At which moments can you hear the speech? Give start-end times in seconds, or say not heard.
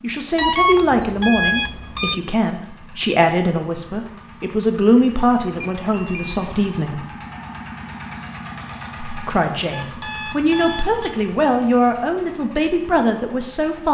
0.0-7.0, 9.1-13.9.